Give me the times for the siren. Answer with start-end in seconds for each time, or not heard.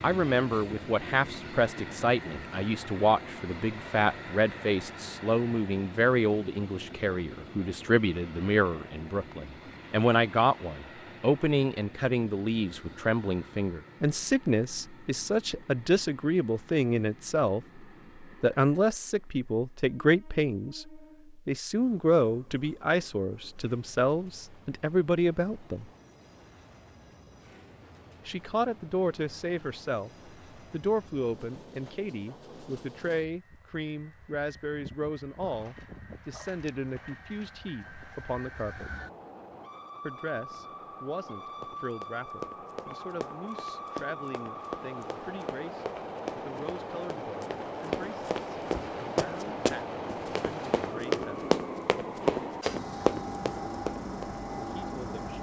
not heard.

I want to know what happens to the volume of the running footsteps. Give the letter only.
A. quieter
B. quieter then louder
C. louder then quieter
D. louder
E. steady
D.